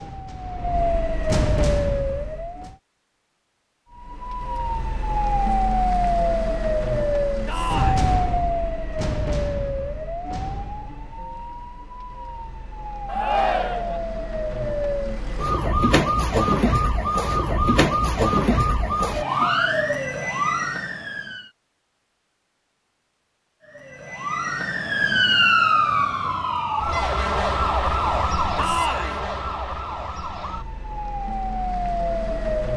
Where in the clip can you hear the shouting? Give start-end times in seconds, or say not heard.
7.5-8.1, 13.1-14.0, 28.6-29.2.